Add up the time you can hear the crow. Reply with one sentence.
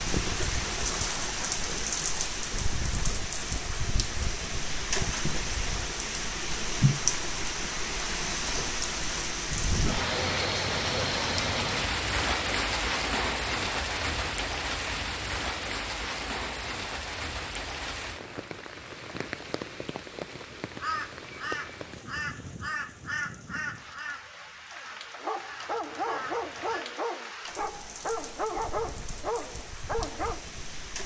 The crow can be heard for 6 seconds in total.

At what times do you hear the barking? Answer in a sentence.
The barking can be heard from 25.0 to 30.4 s.